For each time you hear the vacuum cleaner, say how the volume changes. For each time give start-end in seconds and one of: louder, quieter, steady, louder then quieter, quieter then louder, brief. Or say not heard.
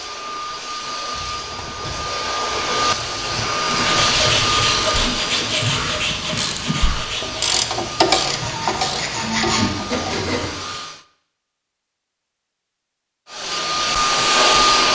0.0-11.1 louder then quieter
13.2-14.9 brief.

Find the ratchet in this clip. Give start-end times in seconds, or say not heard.
1.1-10.1.